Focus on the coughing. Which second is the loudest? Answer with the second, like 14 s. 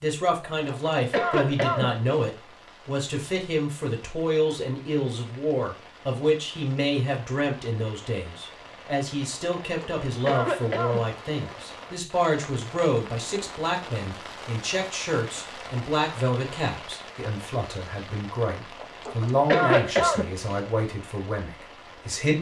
20 s.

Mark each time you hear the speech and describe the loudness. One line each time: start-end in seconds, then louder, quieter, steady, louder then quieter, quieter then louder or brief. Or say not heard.
0.0-22.3 steady.